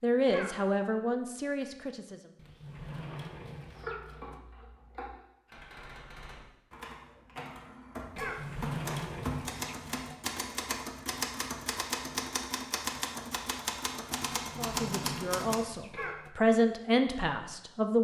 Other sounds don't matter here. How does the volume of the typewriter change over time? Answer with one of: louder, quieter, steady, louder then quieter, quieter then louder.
louder.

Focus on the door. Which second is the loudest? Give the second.
9 s.